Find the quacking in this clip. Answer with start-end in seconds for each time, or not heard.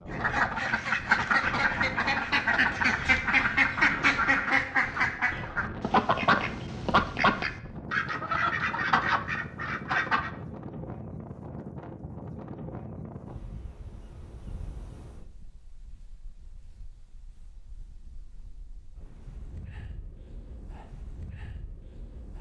0.1-10.3.